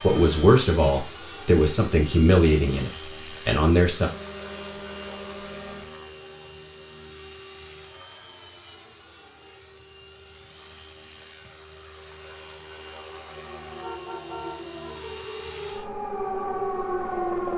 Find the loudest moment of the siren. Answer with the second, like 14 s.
17 s.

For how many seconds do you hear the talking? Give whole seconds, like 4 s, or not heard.
4 s.